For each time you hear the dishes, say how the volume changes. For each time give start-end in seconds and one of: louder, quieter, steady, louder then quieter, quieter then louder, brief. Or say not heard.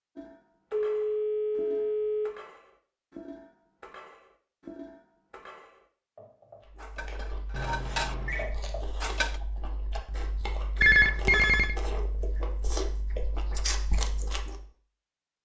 0.1-9.4 louder.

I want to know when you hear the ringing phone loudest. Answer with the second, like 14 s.
11 s.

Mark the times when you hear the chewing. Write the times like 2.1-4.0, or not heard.
6.6-14.7.